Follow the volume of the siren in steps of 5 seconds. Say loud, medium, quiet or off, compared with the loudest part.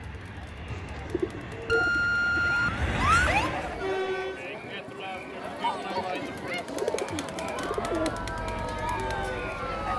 loud, medium.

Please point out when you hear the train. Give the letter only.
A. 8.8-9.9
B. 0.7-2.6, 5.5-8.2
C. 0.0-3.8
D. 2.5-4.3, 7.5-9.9
C.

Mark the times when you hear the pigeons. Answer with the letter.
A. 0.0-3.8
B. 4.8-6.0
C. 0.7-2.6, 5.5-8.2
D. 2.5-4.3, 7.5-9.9
C.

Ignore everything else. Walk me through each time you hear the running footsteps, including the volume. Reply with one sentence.
You can't hear the running footsteps here.